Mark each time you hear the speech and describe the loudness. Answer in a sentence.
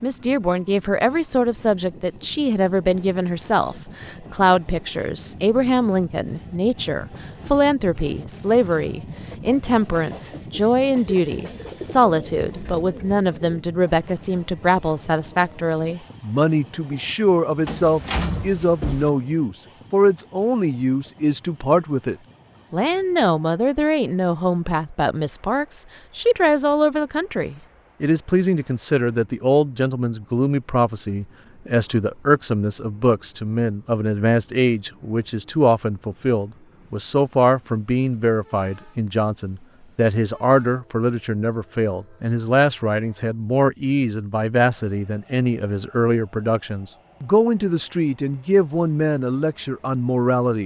The speech can be heard from 0.0 to 50.6 s, at a steady volume.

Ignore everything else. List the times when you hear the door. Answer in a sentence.
The door can be heard from 17.6 to 19.1 s.